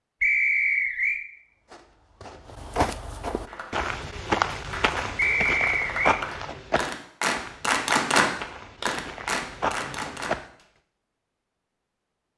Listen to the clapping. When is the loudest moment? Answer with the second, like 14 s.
8 s.